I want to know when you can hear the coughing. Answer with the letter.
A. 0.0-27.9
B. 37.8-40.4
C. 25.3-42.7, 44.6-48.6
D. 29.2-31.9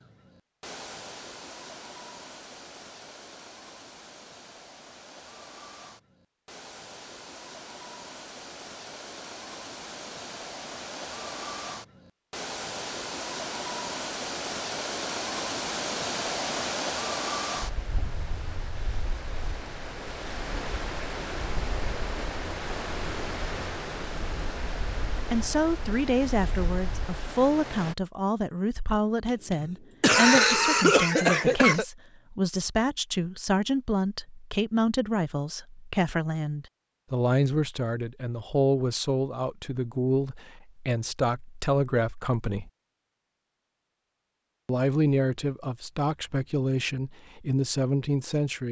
D.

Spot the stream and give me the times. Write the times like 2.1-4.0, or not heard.
0.0-27.9.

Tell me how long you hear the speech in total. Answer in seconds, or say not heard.
21 s.